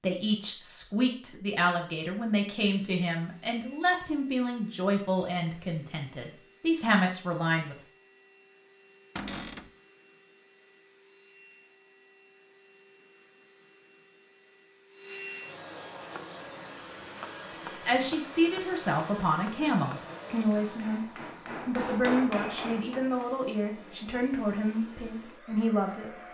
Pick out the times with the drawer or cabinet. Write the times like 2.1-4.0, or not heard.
9.2-9.7.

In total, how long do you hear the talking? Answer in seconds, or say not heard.
16 s.